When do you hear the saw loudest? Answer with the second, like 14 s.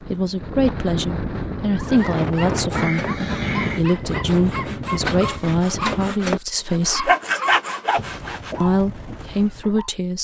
7 s.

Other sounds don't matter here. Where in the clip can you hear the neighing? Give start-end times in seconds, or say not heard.
2.7-3.9.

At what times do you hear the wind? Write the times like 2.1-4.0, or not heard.
0.0-6.1.